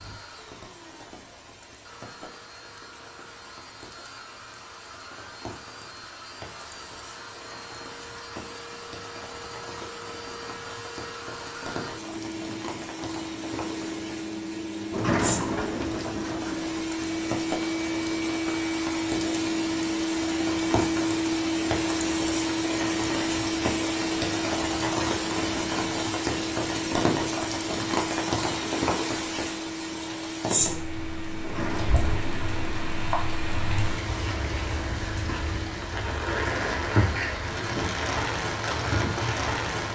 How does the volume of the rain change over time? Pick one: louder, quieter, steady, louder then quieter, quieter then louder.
louder.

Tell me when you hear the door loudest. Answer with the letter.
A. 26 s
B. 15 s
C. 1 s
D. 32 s
B.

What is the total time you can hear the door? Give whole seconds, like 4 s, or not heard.
3 s.